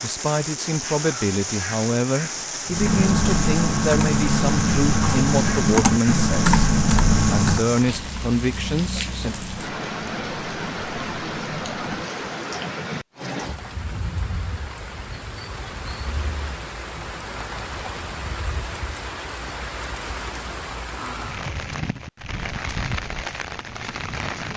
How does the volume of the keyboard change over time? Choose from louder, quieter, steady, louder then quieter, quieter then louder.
quieter.